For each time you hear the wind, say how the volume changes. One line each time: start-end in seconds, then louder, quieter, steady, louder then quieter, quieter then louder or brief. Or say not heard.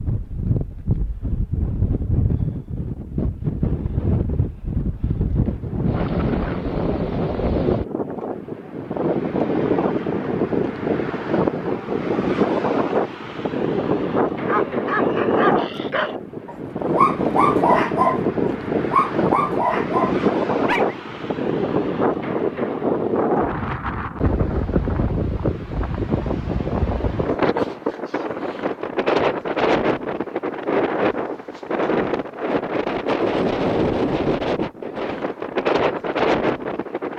0.0-37.1 steady.